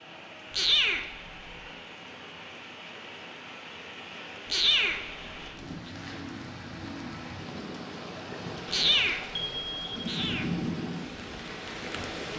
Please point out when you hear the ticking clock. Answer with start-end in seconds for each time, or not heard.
not heard.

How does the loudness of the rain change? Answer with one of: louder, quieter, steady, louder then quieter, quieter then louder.
louder.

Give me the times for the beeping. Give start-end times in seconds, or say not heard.
9.3-10.1.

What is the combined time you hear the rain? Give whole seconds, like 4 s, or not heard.
12 s.